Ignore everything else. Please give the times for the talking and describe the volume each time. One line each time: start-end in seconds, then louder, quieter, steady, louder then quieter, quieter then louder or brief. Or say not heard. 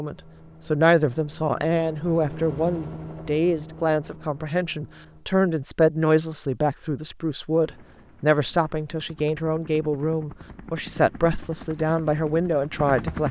0.0-13.2 steady.